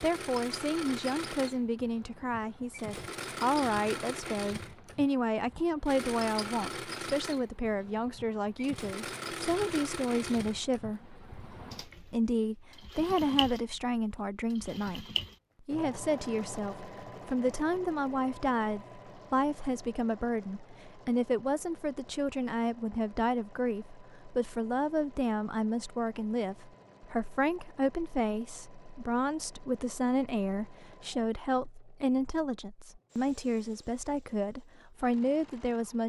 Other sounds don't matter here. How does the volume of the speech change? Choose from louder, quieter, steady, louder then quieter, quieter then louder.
steady.